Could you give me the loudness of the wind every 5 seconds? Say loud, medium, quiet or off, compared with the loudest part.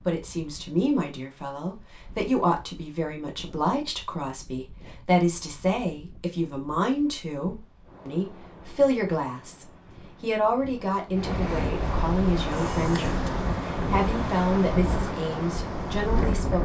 quiet, quiet, loud, loud.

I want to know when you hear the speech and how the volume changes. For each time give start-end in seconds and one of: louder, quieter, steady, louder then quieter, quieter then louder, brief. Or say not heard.
0.1-16.6 steady.